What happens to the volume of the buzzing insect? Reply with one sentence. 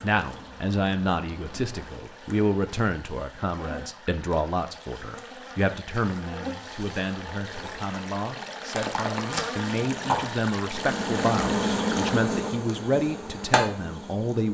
The volume of the buzzing insect goes up.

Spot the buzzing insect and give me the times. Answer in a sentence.
The buzzing insect can be heard from 0.0 to 14.5 s.